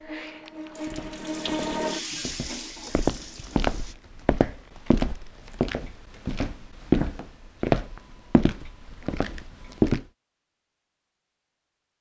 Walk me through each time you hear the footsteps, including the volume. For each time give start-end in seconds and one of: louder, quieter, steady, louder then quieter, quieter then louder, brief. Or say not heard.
0.8-10.1 louder then quieter.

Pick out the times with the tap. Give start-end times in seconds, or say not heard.
0.0-4.0.